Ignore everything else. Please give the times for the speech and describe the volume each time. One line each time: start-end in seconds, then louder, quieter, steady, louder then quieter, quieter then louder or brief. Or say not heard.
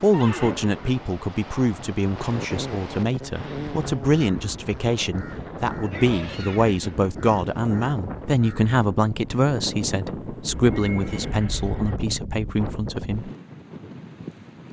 0.0-13.3 steady.